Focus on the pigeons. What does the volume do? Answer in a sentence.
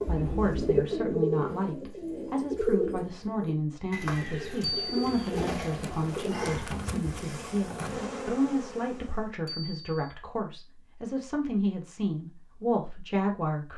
The loudness of the pigeons goes down.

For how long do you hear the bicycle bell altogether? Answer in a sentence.
The bicycle bell can be heard for 2 seconds in total.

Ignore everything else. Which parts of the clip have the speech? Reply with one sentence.
The speech can be heard from 0.1 to 13.7 s.